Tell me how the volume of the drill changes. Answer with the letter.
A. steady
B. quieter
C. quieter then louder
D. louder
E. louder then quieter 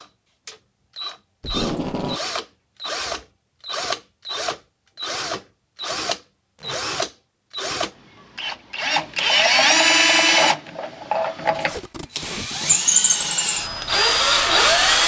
D.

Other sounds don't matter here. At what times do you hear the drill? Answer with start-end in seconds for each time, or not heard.
0.0-15.0.